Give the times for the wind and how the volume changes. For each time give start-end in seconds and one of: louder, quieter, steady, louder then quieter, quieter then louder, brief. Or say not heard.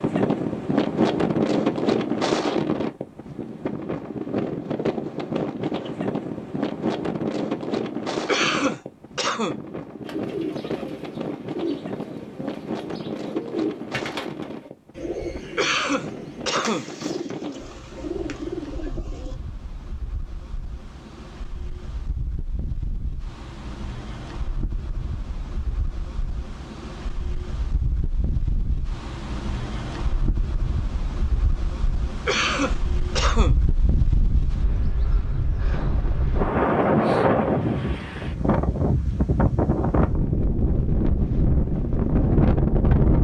0.0-43.2 quieter then louder.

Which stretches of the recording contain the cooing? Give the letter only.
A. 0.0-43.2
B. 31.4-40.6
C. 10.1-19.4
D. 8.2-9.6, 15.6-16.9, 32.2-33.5
C.